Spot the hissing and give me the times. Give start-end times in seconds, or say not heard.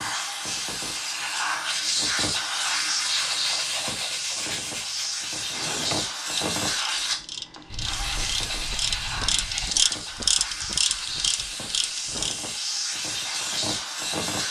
0.0-14.4.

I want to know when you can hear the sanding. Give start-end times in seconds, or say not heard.
3.0-5.3, 7.7-9.8.